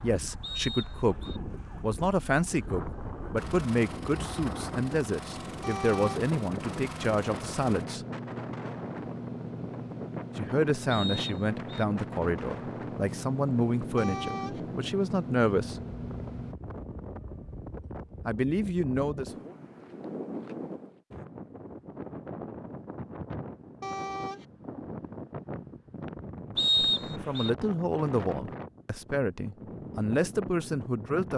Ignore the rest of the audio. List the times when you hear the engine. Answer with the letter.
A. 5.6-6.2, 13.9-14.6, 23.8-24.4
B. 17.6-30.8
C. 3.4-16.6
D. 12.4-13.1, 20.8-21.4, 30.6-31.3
C.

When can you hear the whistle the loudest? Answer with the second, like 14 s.
27 s.